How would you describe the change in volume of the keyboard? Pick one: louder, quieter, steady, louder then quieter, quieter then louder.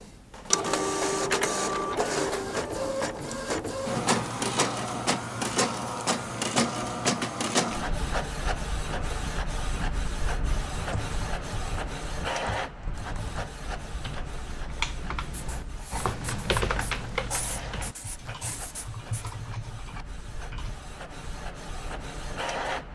louder then quieter.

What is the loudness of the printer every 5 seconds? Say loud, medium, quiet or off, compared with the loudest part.
loud, loud, medium, quiet, medium.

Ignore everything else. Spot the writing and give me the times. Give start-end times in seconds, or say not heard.
15.2-19.4.